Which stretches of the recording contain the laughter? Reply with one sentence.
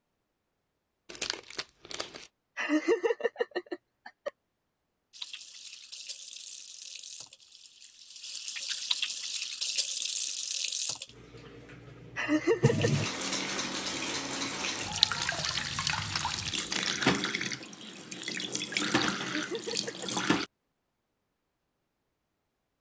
The laughter can be heard from 2.5 to 4.3 s, from 12.2 to 13.1 s and from 19.2 to 20.1 s.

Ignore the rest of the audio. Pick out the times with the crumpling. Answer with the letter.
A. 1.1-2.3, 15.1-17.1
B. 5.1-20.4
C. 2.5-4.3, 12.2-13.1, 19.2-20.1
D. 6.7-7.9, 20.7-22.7
A.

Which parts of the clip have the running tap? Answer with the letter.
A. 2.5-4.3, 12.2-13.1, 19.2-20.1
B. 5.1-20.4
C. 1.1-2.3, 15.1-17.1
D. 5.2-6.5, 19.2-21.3
B.